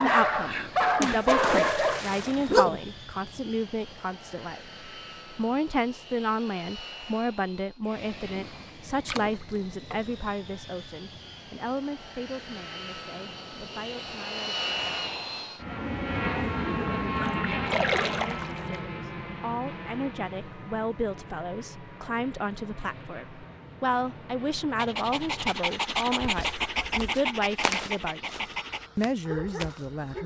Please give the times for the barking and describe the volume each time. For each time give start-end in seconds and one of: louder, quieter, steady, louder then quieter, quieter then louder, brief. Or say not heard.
0.0-2.8 brief
24.8-30.2 quieter.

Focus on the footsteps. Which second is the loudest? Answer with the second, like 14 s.
28 s.